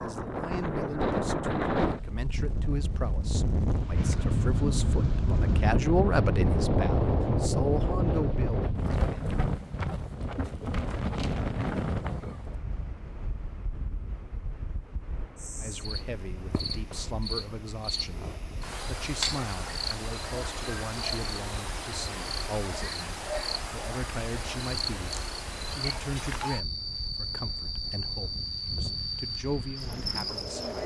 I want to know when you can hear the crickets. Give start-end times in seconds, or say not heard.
15.3-30.8.